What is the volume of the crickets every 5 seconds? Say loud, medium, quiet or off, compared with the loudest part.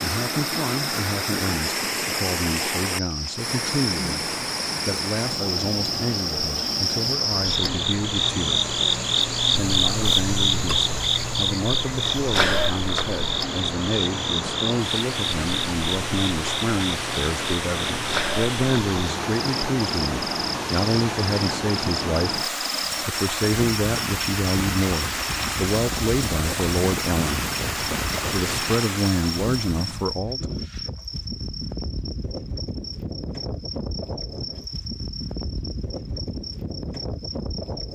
medium, loud, loud, medium, medium, medium, medium, medium.